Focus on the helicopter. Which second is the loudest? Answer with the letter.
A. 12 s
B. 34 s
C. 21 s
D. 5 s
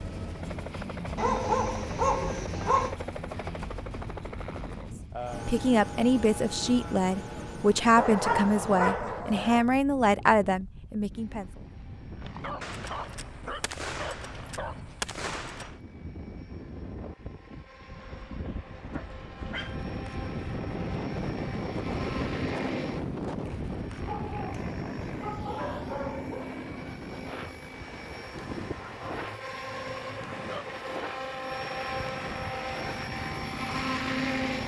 B.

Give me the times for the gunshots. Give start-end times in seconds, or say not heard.
12.6-15.8.